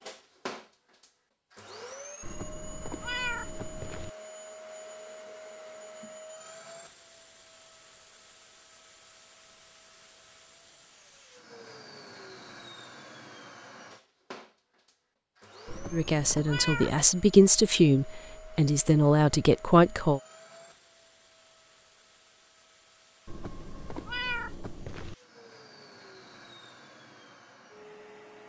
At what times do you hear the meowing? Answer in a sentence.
The meowing can be heard from 2.2 to 4.1 s, from 15.7 to 17.1 s and from 23.2 to 25.1 s.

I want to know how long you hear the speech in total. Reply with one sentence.
The speech can be heard for 4 seconds in total.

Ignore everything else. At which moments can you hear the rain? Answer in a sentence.
You can't hear the rain here.